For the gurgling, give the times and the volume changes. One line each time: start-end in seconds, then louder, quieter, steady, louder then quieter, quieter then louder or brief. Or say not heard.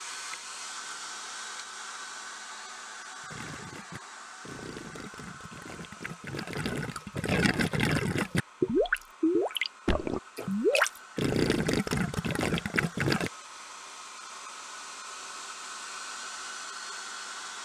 3.2-13.3 louder.